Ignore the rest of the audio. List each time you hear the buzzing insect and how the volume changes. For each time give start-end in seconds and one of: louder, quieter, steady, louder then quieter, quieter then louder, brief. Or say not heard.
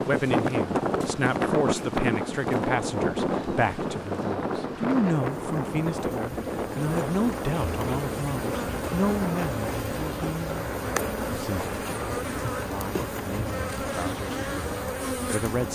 0.1-15.7 louder.